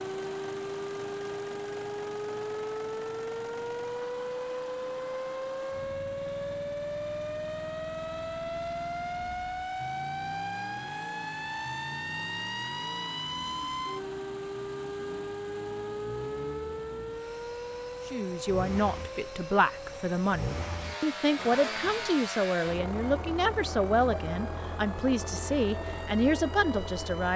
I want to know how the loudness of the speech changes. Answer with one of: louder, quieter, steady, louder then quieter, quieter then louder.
steady.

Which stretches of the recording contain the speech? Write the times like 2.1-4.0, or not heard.
18.1-27.3.